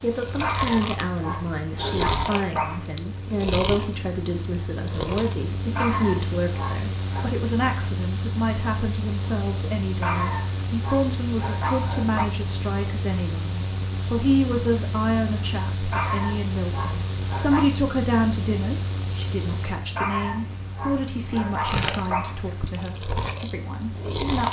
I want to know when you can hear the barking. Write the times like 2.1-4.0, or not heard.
0.4-3.0, 5.8-7.3, 10.0-12.3, 15.9-17.7, 19.9-22.8.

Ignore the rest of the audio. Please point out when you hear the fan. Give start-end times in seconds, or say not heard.
0.0-24.3.